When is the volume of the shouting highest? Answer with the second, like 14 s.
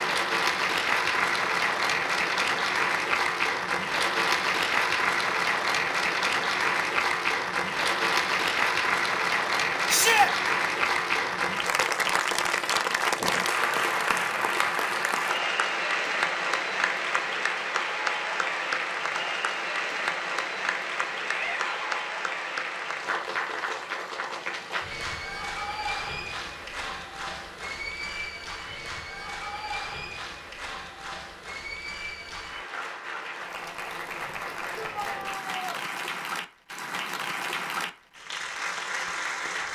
10 s.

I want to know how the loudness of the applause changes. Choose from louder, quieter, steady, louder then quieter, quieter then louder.
quieter.